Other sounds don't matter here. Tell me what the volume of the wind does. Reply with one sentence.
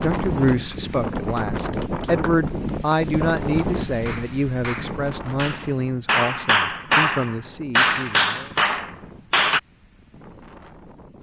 The loudness of the wind goes down.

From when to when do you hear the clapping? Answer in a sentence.
The clapping can be heard from 0.5 to 9.6 s.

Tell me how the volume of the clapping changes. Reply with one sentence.
The loudness of the clapping goes up.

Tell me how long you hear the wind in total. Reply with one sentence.
You can hear the wind for 11 seconds altogether.